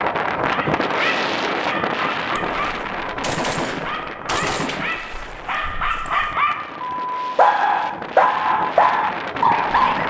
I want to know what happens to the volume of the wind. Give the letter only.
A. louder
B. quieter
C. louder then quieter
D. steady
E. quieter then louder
E.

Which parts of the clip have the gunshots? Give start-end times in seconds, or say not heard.
2.4-6.3.